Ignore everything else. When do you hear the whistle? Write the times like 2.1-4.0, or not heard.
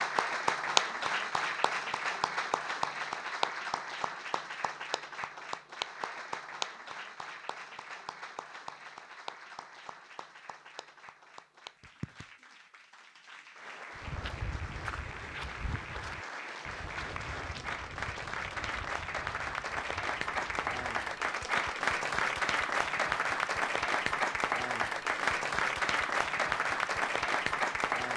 not heard.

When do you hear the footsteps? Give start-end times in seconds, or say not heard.
13.9-21.1.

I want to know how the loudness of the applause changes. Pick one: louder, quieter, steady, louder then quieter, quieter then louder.
quieter then louder.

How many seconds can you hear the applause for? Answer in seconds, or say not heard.
28 s.